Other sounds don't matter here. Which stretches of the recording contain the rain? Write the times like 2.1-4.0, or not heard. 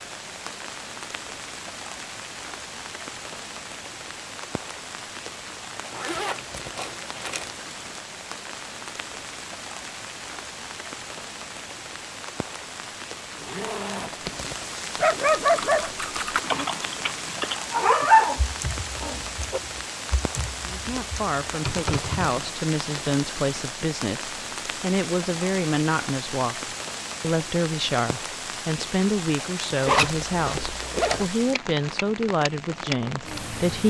0.0-33.8.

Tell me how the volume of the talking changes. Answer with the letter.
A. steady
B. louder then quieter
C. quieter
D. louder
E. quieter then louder
A.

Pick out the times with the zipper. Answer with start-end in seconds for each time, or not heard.
5.9-7.5, 13.4-15.2, 29.9-31.3.